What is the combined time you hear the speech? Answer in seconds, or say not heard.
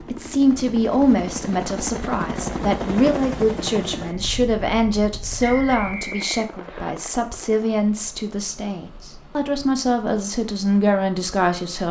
12 s.